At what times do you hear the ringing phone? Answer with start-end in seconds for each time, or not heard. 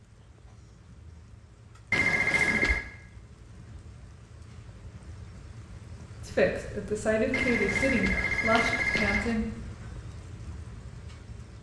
1.9-2.8, 7.3-9.3.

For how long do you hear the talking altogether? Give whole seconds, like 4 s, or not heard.
3 s.